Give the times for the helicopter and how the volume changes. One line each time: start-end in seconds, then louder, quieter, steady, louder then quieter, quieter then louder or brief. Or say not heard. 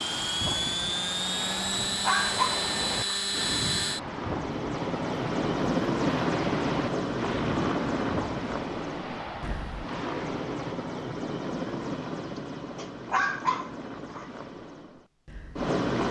0.0-16.0 quieter.